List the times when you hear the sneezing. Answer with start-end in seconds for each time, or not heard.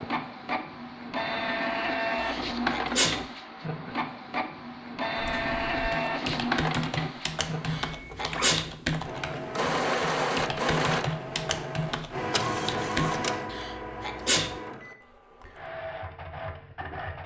2.1-3.2, 7.7-8.7, 13.5-14.6.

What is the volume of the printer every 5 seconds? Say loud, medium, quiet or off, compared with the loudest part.
loud, loud, loud, medium.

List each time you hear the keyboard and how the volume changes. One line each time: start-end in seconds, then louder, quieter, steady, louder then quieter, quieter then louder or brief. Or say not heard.
5.2-13.3 steady.